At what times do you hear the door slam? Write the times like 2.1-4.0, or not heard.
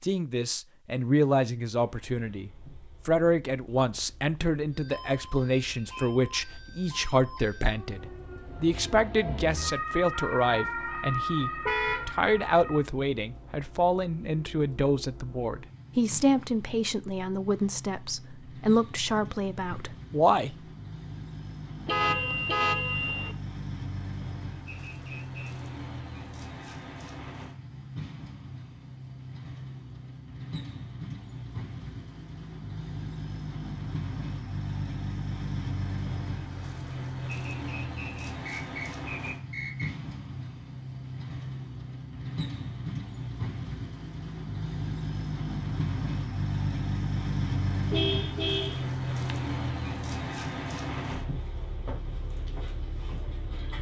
not heard.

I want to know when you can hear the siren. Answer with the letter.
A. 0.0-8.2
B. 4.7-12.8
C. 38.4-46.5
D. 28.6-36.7
B.